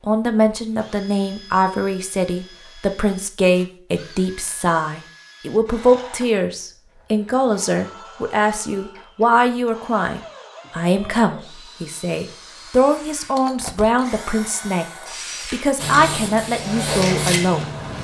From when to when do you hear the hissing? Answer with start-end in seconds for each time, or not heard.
15.8-17.9.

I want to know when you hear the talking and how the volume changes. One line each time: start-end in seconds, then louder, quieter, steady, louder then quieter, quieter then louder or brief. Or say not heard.
0.1-17.7 steady.